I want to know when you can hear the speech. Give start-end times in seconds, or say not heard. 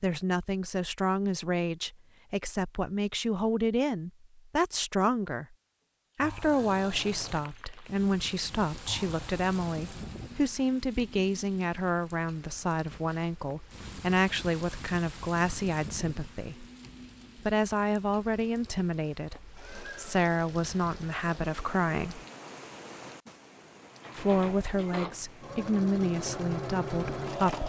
0.0-5.5, 6.2-16.6, 17.4-22.2, 24.1-27.6.